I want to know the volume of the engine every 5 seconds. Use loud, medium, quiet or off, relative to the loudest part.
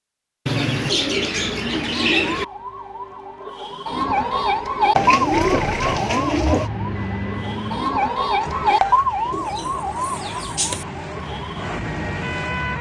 off, loud, loud.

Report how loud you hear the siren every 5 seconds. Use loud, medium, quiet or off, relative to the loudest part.
loud, loud, medium.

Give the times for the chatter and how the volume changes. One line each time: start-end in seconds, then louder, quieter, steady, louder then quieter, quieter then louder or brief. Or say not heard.
not heard.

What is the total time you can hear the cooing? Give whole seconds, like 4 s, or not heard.
5 s.